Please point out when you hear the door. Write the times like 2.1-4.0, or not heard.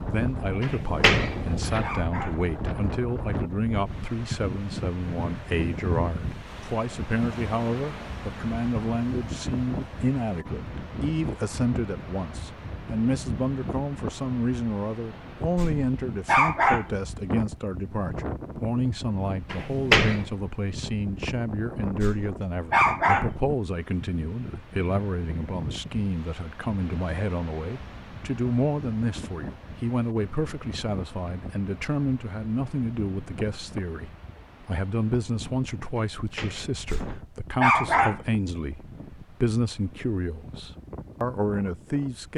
0.6-1.9, 19.5-20.2, 36.1-37.2.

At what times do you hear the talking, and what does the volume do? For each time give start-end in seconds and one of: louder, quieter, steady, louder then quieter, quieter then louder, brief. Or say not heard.
0.0-42.3 steady.